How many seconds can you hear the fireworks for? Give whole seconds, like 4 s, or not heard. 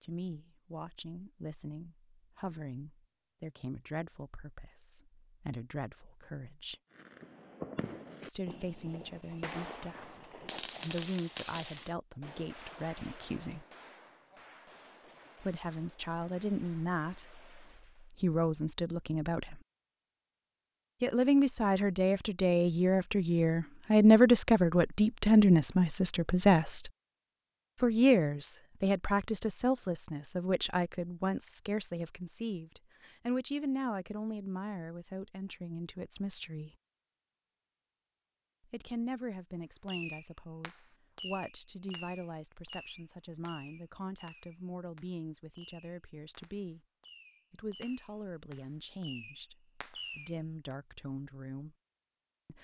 22 s.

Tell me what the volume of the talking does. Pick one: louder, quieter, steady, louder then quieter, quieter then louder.
louder then quieter.